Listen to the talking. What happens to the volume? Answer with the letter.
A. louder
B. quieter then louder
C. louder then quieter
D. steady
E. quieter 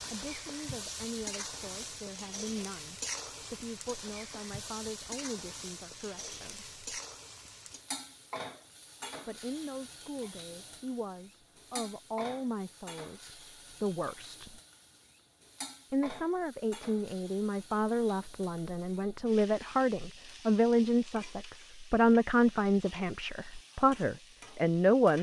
A.